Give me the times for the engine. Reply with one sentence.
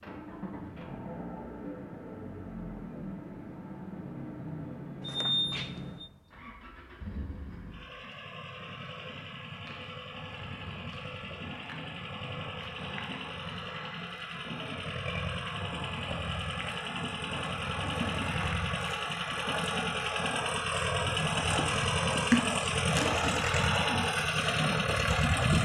You can hear the engine from 0.0 to 25.6 s.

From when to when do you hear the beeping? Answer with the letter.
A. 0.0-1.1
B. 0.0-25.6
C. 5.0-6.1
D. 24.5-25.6
C.